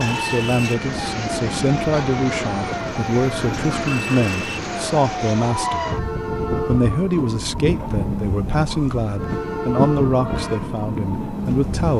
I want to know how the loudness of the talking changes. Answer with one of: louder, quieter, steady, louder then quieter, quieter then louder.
steady.